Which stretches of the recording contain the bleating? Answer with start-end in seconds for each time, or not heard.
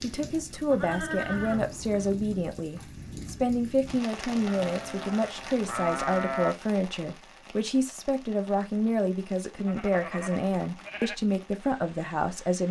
0.7-2.1, 4.2-6.5, 9.6-11.2.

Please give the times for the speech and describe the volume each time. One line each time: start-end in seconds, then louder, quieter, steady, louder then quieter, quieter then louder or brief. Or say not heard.
0.0-12.6 steady.